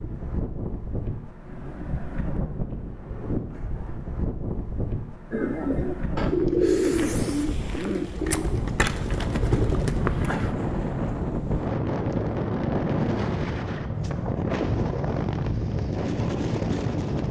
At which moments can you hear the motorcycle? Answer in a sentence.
You can't hear the motorcycle here.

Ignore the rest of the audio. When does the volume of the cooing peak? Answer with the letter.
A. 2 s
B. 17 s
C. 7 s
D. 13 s
C.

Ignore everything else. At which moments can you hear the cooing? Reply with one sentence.
The cooing can be heard from 5.3 to 10.6 s.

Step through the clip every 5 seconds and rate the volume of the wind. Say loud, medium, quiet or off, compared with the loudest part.
medium, medium, loud, loud.